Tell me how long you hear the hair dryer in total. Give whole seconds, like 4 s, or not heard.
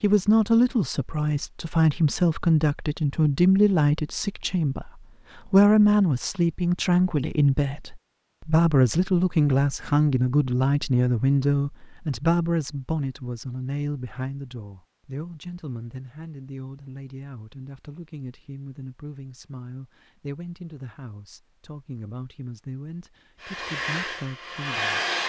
2 s.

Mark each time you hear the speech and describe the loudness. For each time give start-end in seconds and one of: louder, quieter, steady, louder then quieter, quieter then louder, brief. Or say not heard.
0.0-25.0 quieter.